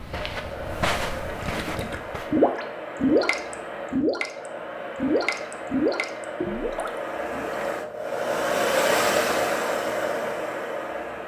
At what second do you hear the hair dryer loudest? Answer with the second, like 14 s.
9 s.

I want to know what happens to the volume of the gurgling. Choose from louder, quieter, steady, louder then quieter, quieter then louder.
quieter.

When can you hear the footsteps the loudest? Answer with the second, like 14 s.
1 s.